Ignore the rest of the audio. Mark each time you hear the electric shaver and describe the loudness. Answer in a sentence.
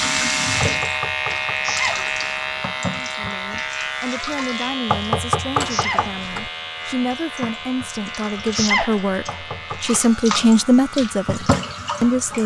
The electric shaver can be heard from 0.0 to 12.4 s, getting quieter.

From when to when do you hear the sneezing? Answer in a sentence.
The sneezing can be heard from 1.6 to 2.1 s, from 5.7 to 6.2 s and from 8.6 to 9.0 s.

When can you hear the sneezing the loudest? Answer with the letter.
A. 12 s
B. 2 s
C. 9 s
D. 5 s
C.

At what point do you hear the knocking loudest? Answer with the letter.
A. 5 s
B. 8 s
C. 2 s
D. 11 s
A.